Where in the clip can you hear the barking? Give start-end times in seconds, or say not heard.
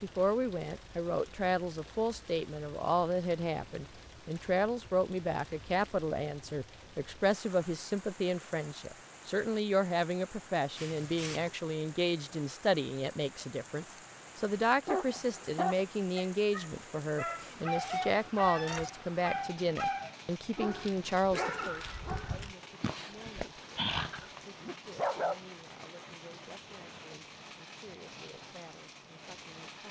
14.8-25.4.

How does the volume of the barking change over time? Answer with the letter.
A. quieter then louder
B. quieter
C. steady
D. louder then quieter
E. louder
C.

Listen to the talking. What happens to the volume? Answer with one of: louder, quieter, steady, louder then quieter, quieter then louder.
quieter.